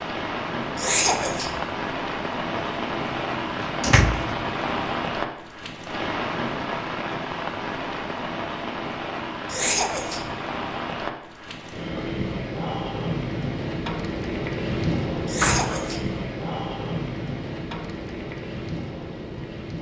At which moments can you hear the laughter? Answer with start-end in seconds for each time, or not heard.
0.8-1.6, 9.5-10.3, 15.2-16.1.